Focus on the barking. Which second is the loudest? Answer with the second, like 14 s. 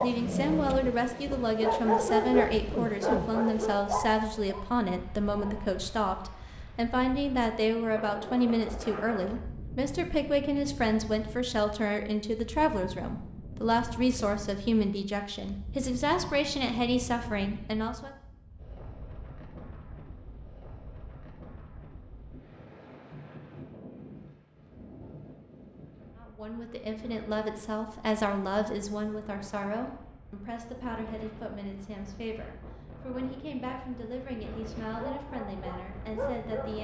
2 s.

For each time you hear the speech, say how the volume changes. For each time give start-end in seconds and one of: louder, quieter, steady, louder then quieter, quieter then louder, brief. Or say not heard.
0.0-18.1 steady
26.1-36.7 quieter.